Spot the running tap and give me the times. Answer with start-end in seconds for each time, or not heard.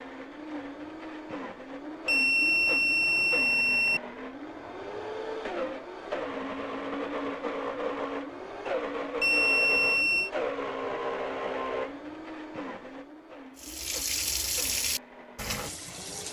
13.6-16.2.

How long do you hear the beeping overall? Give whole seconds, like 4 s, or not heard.
3 s.